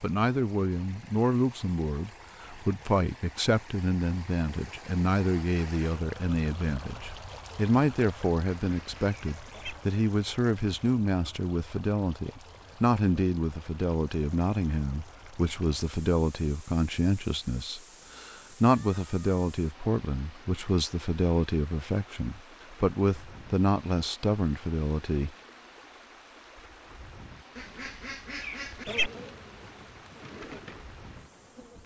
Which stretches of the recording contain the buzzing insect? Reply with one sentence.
The buzzing insect can be heard from 28.9 to 31.8 s.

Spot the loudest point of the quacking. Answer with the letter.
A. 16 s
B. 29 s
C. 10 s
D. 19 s
B.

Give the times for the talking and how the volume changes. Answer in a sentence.
The talking can be heard from 0.0 to 25.4 s, at a steady volume.